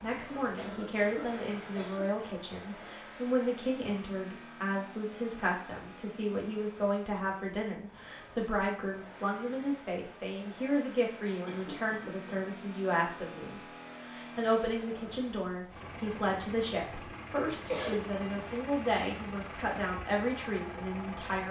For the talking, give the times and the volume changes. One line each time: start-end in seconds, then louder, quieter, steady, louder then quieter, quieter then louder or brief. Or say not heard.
0.0-21.4 steady.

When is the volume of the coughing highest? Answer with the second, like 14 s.
18 s.